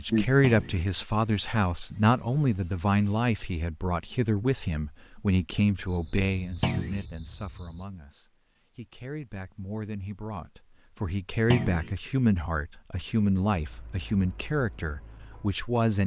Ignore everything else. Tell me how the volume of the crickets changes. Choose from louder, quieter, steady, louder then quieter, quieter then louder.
quieter.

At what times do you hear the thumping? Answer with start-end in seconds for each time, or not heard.
0.4-0.8, 6.6-7.0, 11.5-11.9.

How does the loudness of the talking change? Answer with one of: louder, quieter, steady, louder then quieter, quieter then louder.
quieter then louder.